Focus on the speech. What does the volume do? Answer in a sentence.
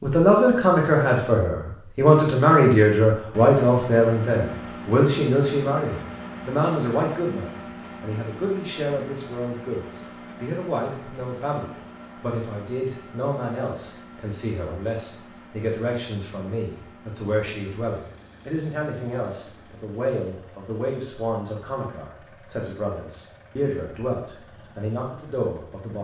The volume of the speech goes down.